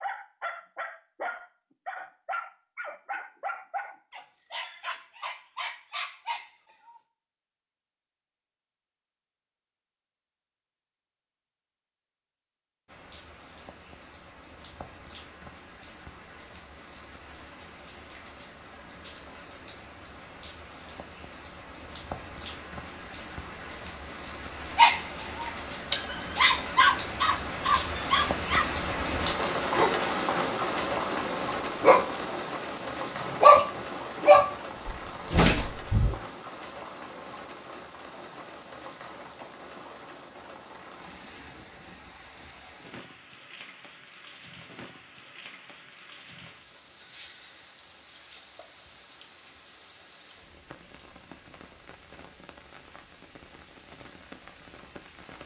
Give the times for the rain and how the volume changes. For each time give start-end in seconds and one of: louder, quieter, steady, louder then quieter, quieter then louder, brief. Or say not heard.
12.8-55.4 louder then quieter.